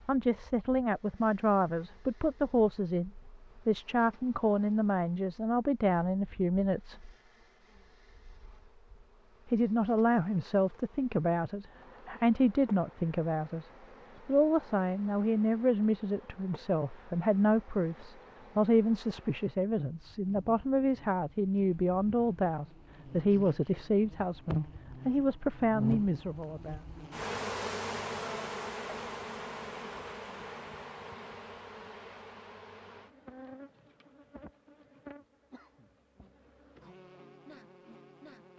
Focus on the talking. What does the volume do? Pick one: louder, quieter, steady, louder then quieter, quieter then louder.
steady.